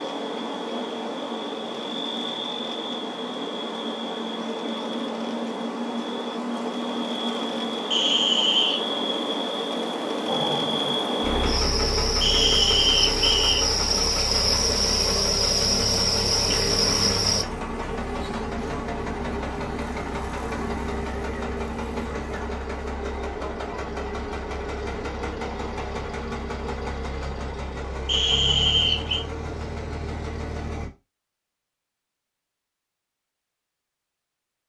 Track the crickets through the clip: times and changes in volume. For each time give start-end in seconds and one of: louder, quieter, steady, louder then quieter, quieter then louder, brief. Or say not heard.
0.0-17.4 louder.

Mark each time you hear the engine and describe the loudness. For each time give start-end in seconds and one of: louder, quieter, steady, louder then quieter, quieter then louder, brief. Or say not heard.
10.2-30.9 steady.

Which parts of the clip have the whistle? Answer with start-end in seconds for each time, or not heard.
7.9-8.8, 12.2-13.7, 28.1-29.2.